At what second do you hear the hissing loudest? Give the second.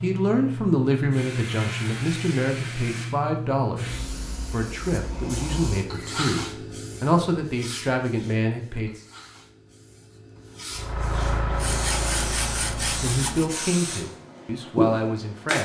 15 s.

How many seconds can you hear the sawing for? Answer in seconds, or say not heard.
2 s.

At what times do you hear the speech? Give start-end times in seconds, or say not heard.
0.0-9.0, 13.0-15.6.